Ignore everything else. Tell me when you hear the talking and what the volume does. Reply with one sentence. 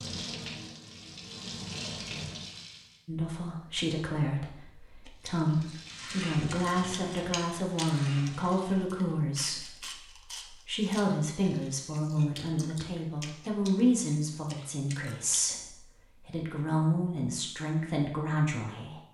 You can hear the talking from 3.0 to 19.0 s, at a steady volume.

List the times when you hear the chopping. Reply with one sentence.
The chopping can't be heard in this clip.